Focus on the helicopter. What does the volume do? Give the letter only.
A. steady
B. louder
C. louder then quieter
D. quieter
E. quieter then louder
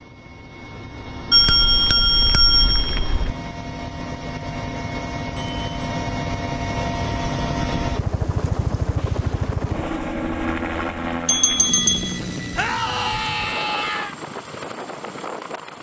C.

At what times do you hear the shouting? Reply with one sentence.
The shouting can be heard from 12.6 to 14.2 s.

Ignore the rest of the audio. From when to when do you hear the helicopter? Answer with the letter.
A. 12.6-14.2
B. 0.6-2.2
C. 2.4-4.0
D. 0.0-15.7
D.